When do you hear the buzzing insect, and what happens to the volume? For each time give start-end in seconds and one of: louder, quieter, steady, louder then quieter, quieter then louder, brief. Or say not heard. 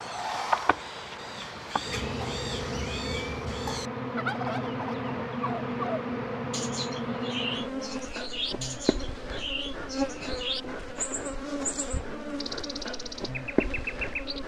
0.0-14.4 steady.